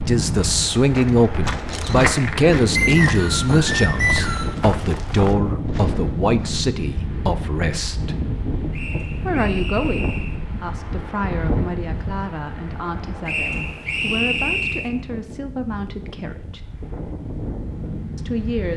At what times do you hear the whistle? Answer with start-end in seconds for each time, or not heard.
2.8-4.5, 8.7-10.3, 13.2-14.9.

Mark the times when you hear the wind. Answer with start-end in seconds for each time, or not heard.
0.0-18.7.